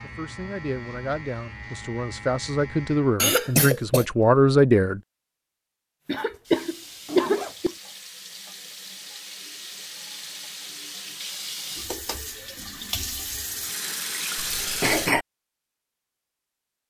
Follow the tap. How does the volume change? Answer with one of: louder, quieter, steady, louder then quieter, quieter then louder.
louder.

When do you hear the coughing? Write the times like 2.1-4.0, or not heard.
3.1-4.0, 6.0-7.7, 14.3-15.2.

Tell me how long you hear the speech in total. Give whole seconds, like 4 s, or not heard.
5 s.